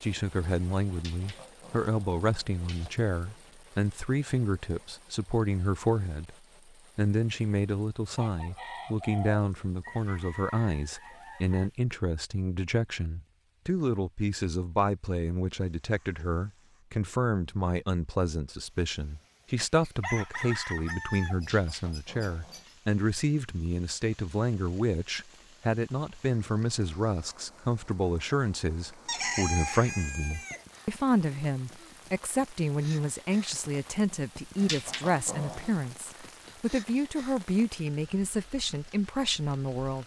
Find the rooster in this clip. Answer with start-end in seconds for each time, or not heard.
8.2-11.6, 19.6-22.8, 29.1-30.6.